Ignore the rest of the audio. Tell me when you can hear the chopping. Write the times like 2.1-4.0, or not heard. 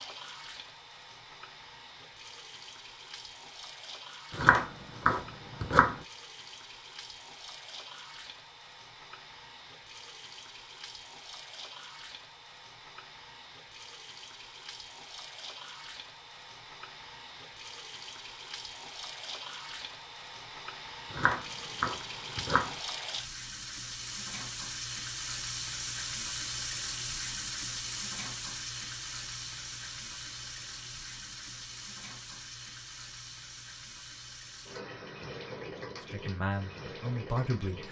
4.3-6.0, 21.1-22.8.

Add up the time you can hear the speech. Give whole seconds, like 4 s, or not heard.
2 s.